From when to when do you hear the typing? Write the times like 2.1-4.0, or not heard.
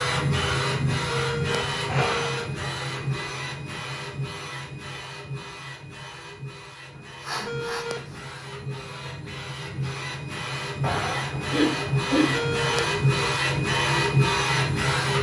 not heard.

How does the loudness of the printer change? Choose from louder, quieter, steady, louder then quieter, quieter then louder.
quieter then louder.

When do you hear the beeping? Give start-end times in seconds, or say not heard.
1.1-2.5, 7.4-8.3, 12.3-13.4.